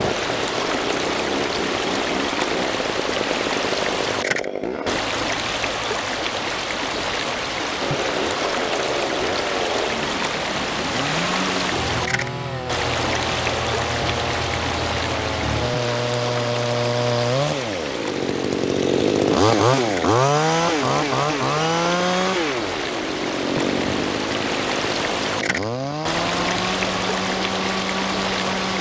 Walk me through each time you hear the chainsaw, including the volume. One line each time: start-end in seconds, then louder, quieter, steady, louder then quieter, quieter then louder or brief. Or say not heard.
0.0-5.0 steady
7.8-28.7 louder then quieter.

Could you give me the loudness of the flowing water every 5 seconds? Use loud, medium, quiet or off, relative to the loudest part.
loud, loud, loud, medium, loud, loud.